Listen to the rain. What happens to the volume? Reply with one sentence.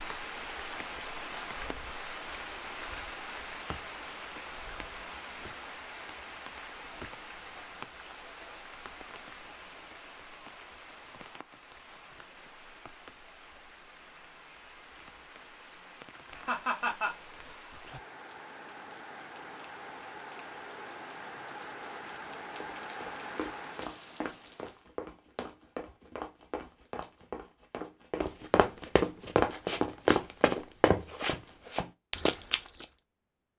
The volume of the rain goes down, then up.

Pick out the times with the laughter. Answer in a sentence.
You can hear the laughter from 16.4 to 17.1 s.